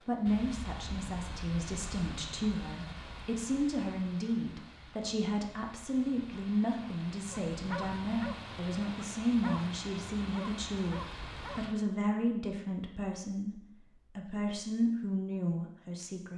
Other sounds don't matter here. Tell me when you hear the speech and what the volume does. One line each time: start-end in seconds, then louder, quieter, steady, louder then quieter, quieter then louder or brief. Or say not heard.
0.1-16.3 steady.